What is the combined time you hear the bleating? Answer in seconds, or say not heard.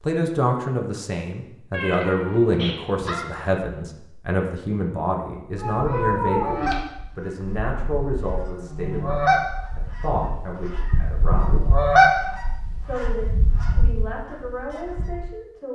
not heard.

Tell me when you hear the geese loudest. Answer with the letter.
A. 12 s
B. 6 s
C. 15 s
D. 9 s
A.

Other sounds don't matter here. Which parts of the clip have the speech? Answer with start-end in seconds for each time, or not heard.
0.0-11.6, 12.8-15.7.